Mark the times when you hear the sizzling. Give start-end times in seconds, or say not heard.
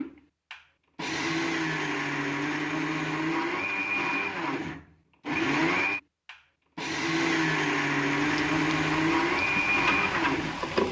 8.3-10.8.